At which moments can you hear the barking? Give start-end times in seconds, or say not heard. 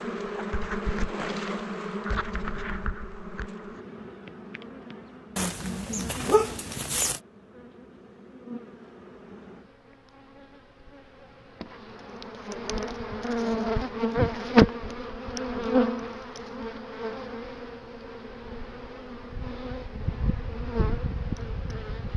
5.3-7.2.